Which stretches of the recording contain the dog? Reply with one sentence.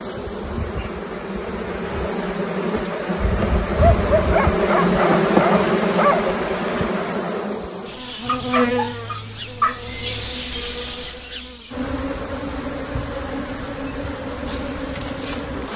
You can hear the dog from 3.8 to 6.3 s and from 8.2 to 10.1 s.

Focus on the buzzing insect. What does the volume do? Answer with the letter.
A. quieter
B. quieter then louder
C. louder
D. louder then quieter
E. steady
D.